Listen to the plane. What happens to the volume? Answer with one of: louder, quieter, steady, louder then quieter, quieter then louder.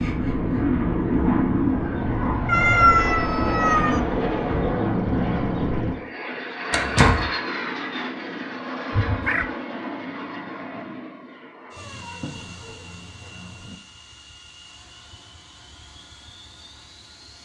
quieter.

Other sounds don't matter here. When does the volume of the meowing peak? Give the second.
3 s.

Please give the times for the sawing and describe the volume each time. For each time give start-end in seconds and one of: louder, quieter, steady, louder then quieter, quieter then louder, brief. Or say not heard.
not heard.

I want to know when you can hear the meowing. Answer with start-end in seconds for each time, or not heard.
2.5-4.0, 8.9-9.4, 11.8-13.8.